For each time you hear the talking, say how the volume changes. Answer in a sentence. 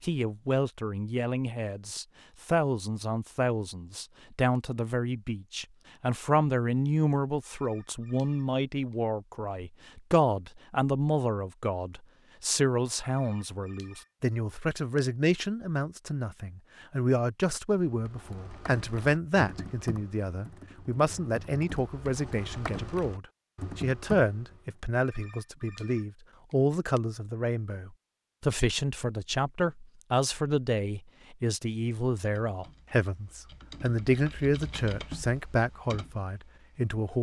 The talking can be heard from 0.0 to 37.1 s, at a steady volume.